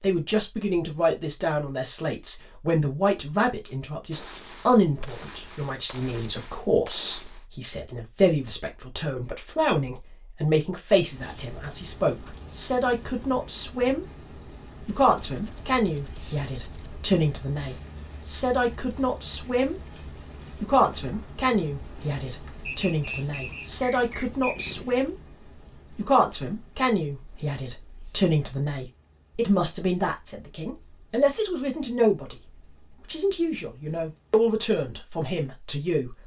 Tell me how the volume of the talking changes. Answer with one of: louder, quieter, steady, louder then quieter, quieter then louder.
steady.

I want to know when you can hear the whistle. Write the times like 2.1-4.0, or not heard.
22.6-24.7.